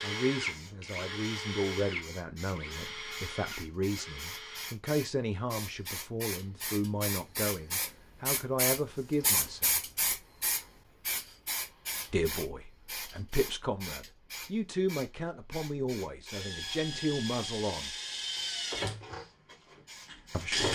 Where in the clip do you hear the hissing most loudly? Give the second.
10 s.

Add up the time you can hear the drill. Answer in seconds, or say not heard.
9 s.